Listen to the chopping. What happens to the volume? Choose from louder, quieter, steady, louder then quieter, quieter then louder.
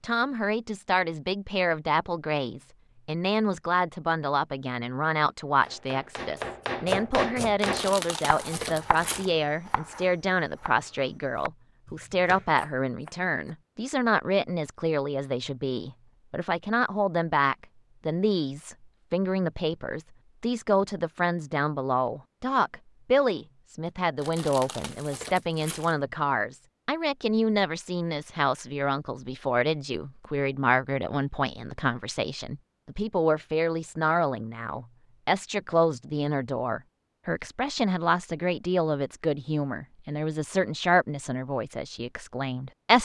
quieter.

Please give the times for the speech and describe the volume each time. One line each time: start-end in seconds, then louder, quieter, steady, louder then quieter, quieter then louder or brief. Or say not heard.
0.0-43.0 steady.